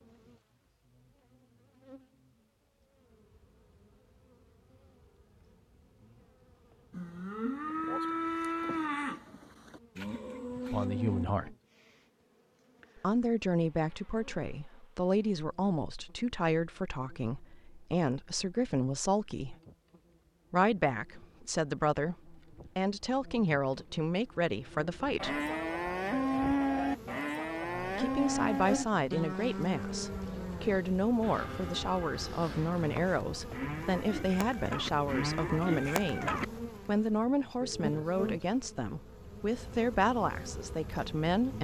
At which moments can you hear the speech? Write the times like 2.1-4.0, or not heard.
10.7-11.6, 13.0-19.6, 20.5-25.4, 27.8-41.6.